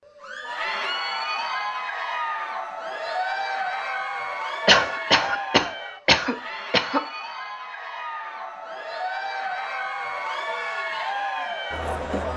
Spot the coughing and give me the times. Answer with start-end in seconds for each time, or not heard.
4.7-7.0.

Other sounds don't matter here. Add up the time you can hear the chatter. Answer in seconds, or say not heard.
12 s.